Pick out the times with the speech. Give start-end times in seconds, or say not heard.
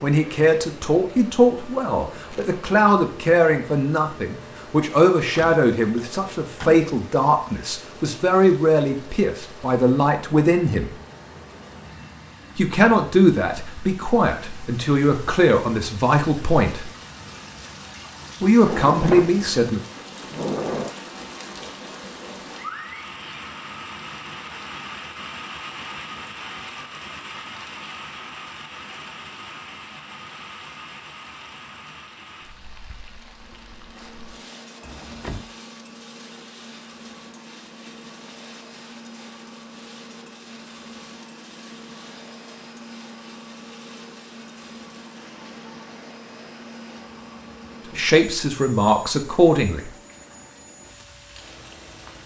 0.0-10.9, 12.6-16.9, 18.4-19.8, 48.0-49.9.